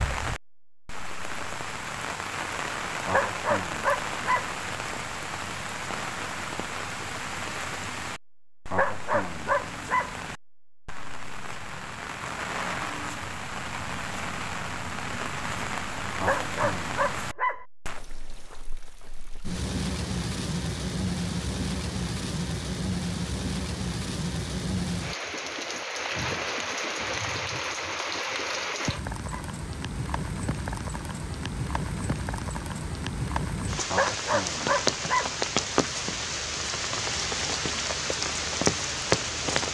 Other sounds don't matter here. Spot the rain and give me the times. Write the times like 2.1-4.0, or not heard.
0.0-39.7.